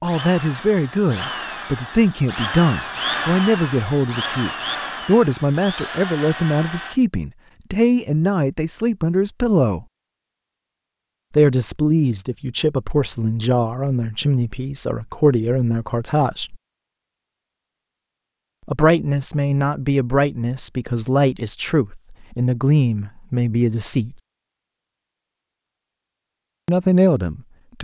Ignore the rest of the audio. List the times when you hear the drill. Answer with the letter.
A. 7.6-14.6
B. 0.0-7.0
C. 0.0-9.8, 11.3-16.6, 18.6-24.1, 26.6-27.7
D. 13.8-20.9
B.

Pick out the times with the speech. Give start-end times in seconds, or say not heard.
0.0-9.8, 11.3-16.6, 18.6-24.1, 26.6-27.7.